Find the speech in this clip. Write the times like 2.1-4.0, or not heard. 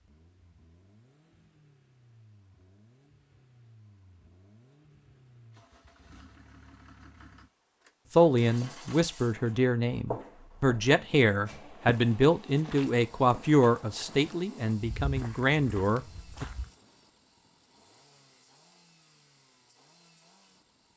8.1-16.4.